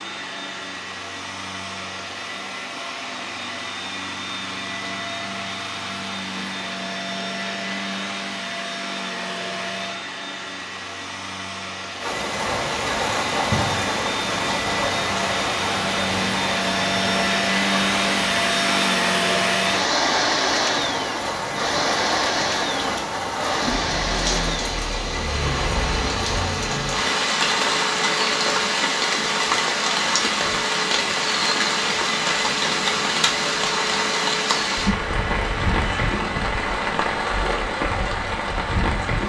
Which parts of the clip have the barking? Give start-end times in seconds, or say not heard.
not heard.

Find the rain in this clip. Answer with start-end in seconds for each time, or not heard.
12.0-39.2.